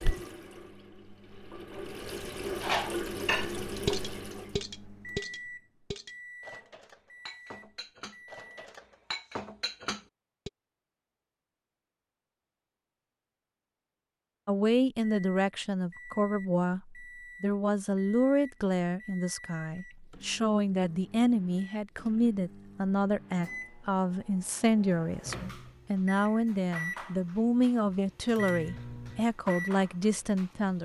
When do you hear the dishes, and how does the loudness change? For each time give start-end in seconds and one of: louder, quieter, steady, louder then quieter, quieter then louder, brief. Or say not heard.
2.6-10.5 quieter then louder.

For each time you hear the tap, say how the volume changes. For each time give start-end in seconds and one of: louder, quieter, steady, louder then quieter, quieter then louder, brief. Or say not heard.
0.0-4.7 louder.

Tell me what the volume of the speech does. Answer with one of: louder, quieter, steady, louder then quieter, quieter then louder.
steady.